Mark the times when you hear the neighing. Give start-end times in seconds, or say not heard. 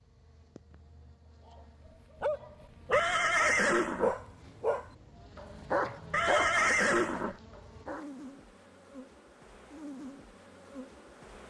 2.9-4.2, 6.1-7.3.